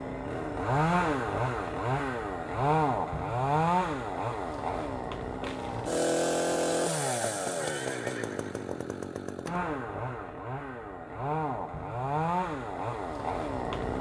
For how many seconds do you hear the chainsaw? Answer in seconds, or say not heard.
14 s.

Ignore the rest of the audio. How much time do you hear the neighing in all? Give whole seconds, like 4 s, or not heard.
2 s.